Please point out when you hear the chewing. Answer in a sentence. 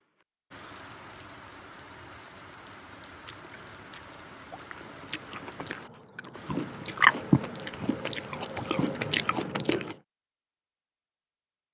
The chewing can be heard from 3.0 to 9.9 s.